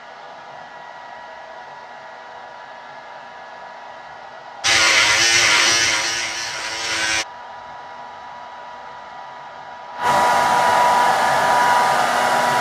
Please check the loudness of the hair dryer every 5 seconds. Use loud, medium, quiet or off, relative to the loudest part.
quiet, quiet, loud.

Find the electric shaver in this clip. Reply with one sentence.
The electric shaver can be heard from 4.6 to 7.2 s.